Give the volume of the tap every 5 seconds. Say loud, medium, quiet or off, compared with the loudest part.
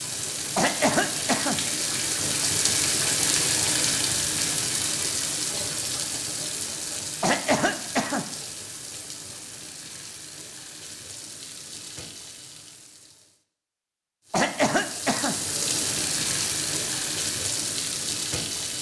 loud, medium, quiet, loud.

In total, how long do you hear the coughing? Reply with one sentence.
The coughing can be heard for 3 seconds in total.